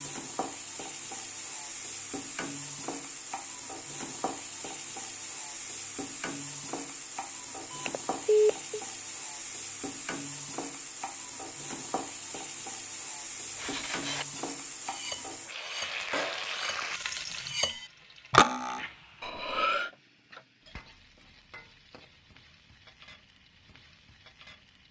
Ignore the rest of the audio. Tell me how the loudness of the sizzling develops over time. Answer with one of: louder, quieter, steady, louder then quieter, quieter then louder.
quieter.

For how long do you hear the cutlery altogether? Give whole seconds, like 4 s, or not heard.
6 s.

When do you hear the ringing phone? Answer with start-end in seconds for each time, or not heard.
7.7-8.8.